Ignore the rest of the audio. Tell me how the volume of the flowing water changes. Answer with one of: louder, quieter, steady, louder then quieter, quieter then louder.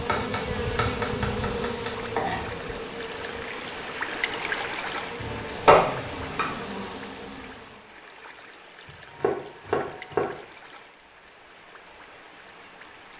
quieter.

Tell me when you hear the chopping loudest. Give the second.
6 s.